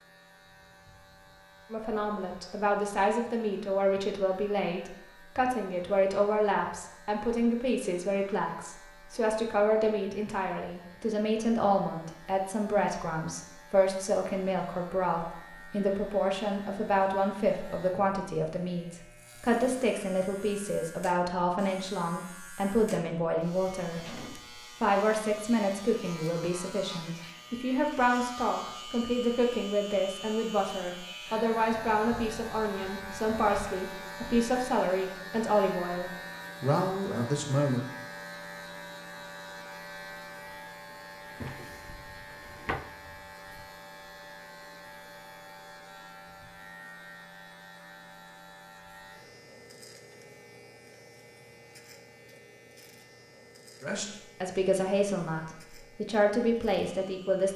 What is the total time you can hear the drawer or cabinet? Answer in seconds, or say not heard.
2 s.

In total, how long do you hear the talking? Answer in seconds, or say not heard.
40 s.